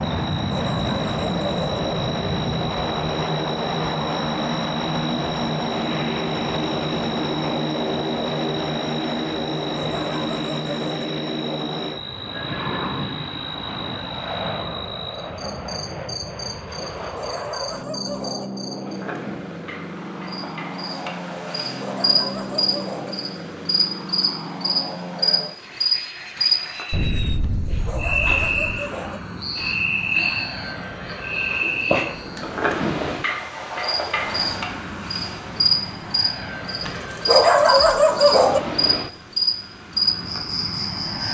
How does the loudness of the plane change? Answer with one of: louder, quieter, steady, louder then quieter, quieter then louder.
quieter.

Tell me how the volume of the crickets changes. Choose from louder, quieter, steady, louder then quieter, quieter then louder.
louder.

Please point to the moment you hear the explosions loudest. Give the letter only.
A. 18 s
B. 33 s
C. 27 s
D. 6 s
C.